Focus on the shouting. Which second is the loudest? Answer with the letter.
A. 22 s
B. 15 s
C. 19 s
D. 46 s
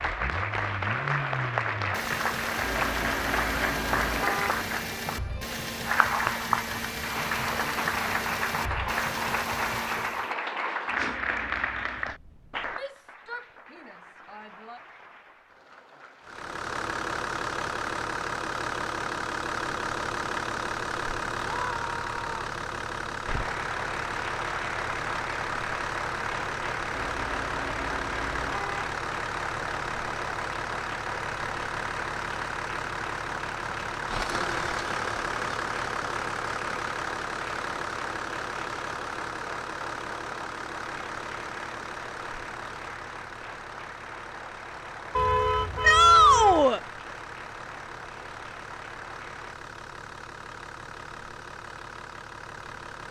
D.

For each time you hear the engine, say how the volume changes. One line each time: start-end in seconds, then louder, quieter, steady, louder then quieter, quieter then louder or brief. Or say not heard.
0.0-10.3 steady
16.2-53.0 quieter.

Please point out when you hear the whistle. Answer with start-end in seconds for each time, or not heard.
not heard.